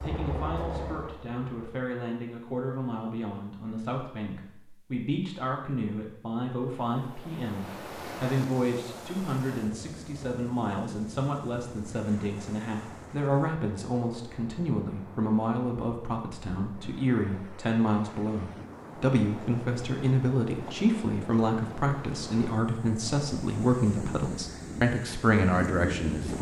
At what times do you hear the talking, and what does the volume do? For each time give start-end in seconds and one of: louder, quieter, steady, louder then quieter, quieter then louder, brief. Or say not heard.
0.0-26.3 louder.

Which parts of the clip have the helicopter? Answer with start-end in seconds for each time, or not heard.
0.0-1.9.